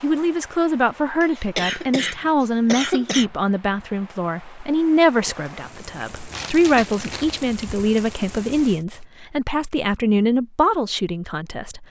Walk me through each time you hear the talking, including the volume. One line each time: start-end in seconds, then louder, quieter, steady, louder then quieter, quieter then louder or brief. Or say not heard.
0.0-11.8 steady.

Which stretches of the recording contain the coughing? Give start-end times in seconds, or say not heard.
1.2-3.2.